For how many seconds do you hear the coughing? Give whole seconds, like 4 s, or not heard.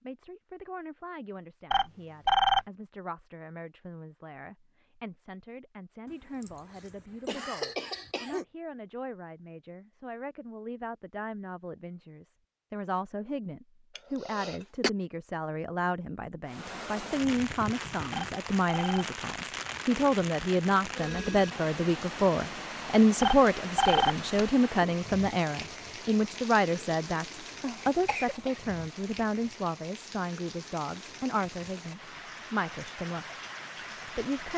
4 s.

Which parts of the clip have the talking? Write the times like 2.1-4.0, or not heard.
0.0-33.2, 34.0-34.5.